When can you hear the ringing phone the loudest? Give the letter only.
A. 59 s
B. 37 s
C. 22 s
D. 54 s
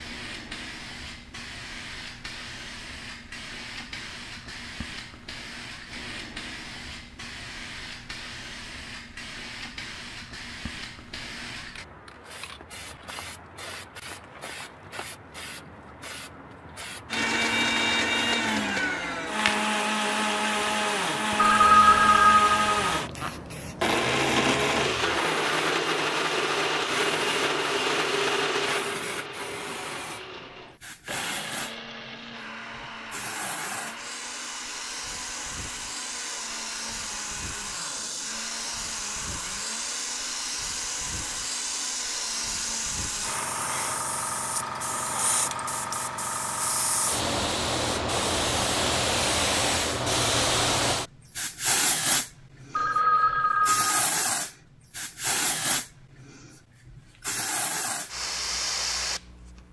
C.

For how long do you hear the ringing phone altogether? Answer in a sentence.
You can hear the ringing phone for 3 seconds altogether.